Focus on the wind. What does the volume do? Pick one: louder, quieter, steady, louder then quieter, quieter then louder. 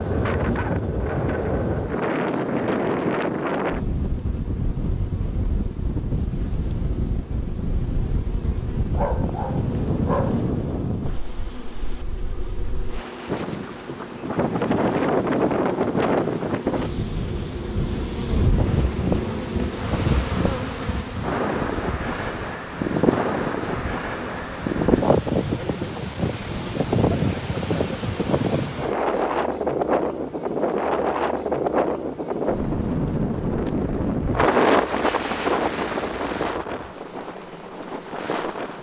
steady.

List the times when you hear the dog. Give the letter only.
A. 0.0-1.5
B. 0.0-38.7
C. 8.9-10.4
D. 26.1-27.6
C.